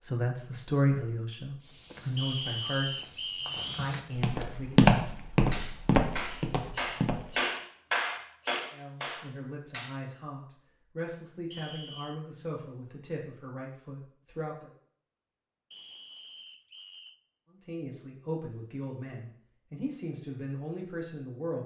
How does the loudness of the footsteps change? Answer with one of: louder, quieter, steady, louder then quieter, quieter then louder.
louder then quieter.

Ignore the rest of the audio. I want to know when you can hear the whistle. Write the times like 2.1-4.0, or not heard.
2.1-3.9, 11.5-12.2, 15.7-17.2.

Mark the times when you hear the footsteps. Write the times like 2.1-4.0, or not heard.
1.6-7.4.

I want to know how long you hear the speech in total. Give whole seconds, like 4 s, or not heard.
15 s.